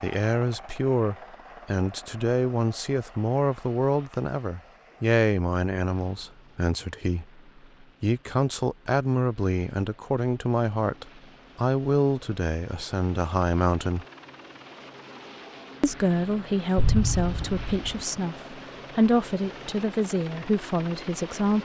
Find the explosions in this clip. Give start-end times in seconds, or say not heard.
16.8-17.9.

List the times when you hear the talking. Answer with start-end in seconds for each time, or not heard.
0.0-7.4, 8.0-14.1, 15.8-21.6.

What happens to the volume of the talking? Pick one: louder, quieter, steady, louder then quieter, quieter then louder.
steady.